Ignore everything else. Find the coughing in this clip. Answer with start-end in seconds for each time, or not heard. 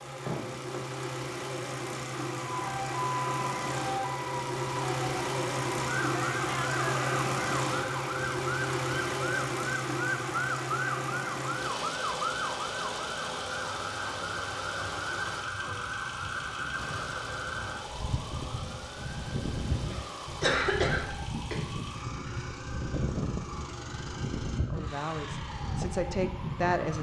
0.2-0.9, 19.9-21.6.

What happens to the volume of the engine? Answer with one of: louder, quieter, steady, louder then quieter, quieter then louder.
quieter.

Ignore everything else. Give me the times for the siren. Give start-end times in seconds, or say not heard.
2.5-26.9.